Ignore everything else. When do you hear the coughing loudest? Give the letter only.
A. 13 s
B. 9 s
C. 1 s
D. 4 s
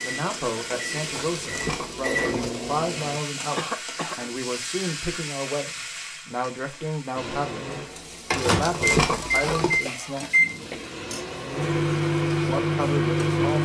D.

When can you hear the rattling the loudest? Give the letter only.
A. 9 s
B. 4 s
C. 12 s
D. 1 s
A.